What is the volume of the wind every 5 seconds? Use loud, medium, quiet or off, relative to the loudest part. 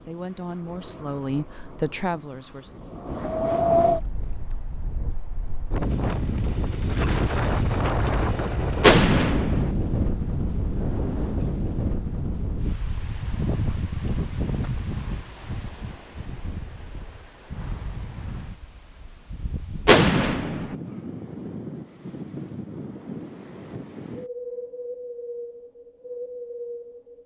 loud, loud, loud, quiet, medium, medium.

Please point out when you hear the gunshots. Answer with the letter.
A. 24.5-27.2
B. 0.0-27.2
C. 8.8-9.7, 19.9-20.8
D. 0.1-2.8
C.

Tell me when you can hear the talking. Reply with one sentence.
The talking can be heard from 0.1 to 2.8 s.